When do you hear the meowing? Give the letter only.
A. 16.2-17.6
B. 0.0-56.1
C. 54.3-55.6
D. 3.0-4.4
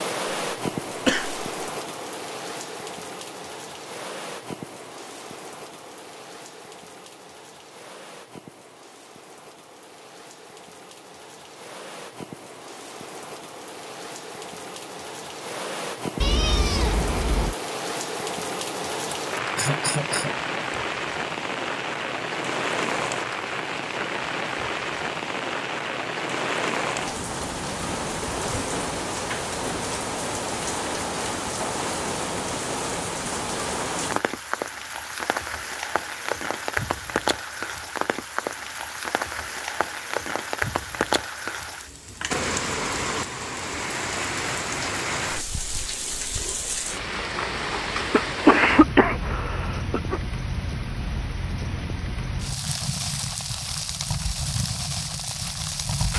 A.